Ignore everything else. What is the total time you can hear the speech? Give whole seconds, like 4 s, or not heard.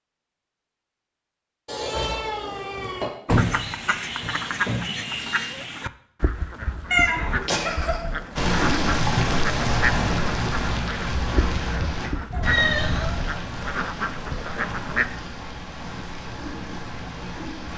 not heard.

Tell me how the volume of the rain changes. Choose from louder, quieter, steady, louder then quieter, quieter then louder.
quieter.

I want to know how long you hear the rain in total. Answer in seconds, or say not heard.
9 s.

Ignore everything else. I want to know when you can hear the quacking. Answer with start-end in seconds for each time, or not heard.
3.3-15.1.